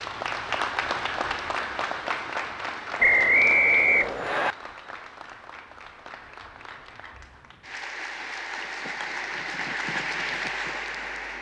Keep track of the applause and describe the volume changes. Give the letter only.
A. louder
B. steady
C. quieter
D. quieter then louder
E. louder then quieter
D.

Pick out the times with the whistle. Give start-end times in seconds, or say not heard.
3.0-4.5.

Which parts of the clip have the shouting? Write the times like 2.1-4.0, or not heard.
not heard.